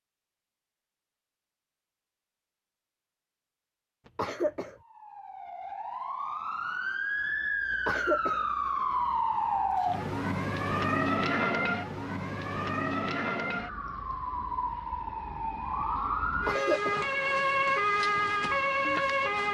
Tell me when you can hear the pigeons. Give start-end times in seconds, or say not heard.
not heard.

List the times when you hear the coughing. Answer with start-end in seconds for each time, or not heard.
4.2-4.8, 7.8-8.4, 16.4-17.1.